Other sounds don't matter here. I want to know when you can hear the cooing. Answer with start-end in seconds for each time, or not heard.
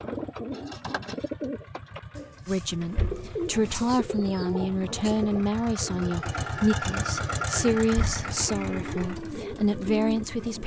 0.0-10.6.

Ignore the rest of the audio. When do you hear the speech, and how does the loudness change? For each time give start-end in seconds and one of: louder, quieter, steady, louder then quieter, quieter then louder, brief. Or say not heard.
2.5-10.6 steady.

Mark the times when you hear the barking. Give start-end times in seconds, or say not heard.
not heard.